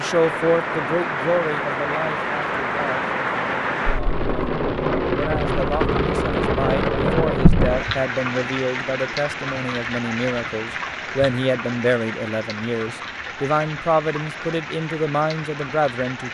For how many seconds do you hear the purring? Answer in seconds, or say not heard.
not heard.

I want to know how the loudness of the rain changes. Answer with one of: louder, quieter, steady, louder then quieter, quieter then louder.
quieter.